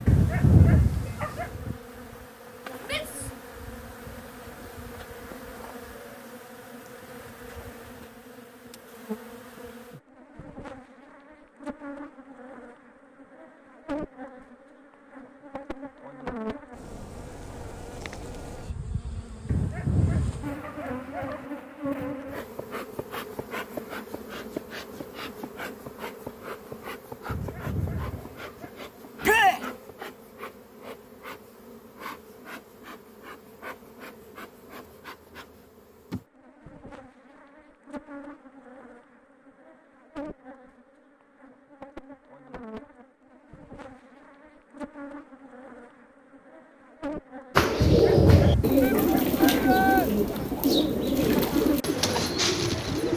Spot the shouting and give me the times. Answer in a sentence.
The shouting can be heard from 2.8 to 3.3 s, from 29.2 to 29.6 s and from 48.8 to 50.1 s.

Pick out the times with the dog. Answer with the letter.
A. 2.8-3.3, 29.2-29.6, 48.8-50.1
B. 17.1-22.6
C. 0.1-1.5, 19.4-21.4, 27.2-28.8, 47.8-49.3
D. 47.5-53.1
C.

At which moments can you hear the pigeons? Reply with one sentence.
The pigeons can be heard from 47.5 to 53.1 s.